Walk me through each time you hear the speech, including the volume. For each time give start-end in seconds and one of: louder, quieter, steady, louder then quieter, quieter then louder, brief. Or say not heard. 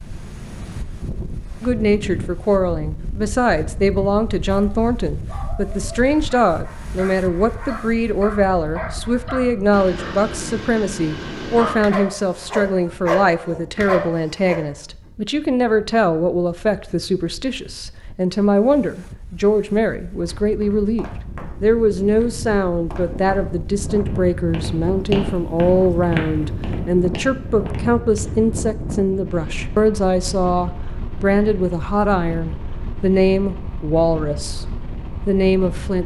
1.6-34.6 steady
35.2-36.0 brief.